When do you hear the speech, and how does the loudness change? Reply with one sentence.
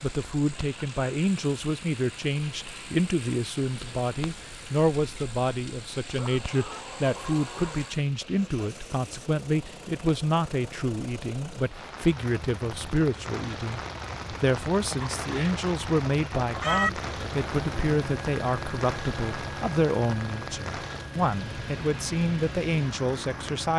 You can hear the speech from 0.0 to 23.7 s, at a steady volume.